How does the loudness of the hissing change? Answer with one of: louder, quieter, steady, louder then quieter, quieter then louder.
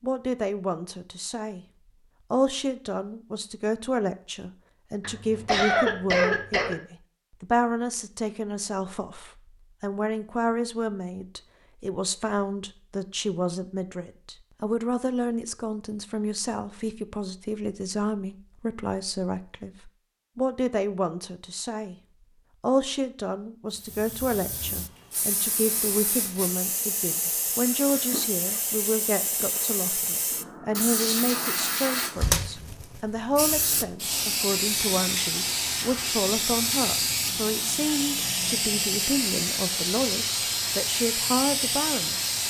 louder.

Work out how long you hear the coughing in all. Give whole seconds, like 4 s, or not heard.
2 s.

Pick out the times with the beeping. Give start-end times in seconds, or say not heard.
not heard.